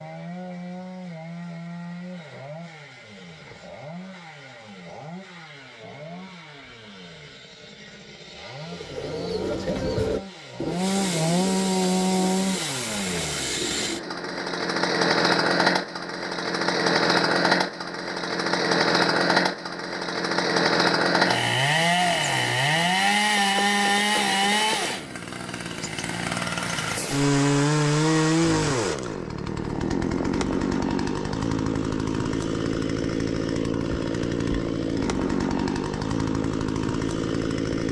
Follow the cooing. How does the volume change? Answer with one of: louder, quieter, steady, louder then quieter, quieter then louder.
quieter.